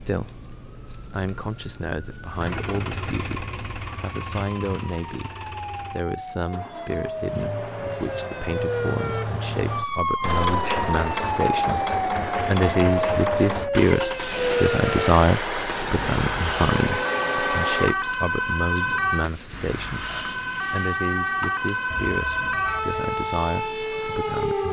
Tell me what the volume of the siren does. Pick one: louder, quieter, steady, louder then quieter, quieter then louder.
louder.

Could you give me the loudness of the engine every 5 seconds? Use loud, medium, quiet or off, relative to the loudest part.
medium, medium, loud, loud, off.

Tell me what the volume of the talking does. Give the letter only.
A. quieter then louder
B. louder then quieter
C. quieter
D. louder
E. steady
B.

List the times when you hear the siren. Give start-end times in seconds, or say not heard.
0.0-24.6.